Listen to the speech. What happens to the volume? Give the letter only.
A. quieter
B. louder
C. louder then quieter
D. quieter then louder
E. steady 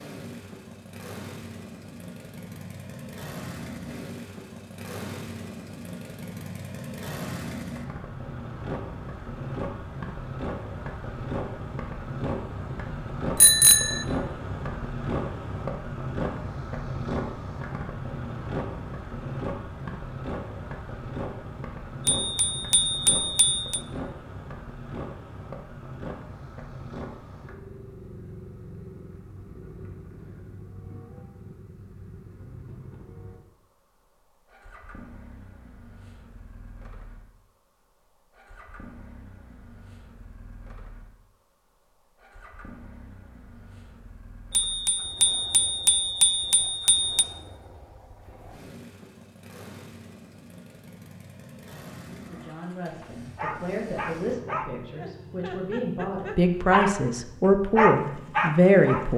B.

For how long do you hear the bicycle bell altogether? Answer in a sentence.
The bicycle bell can be heard for 5 seconds in total.